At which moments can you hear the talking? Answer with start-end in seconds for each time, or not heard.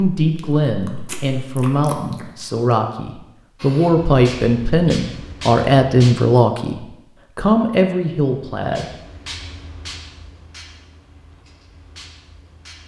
0.0-8.9.